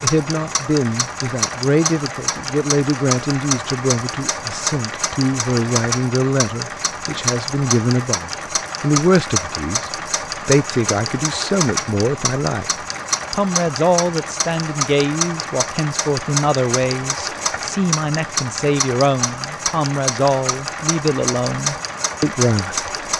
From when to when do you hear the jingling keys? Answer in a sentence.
The jingling keys can't be heard in this clip.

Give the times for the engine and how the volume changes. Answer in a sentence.
You can hear the engine from 0.0 to 23.1 s, at a steady volume.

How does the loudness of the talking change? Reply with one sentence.
The volume of the talking stays about the same.